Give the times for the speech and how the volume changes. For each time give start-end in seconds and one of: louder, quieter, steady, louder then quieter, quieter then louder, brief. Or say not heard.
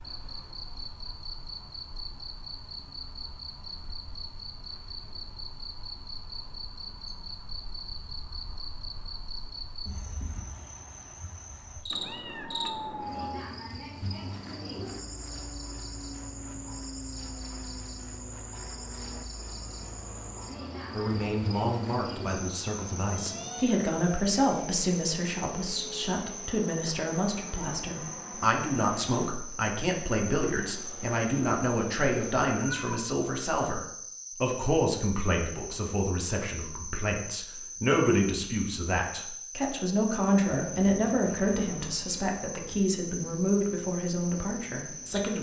20.9-45.3 steady.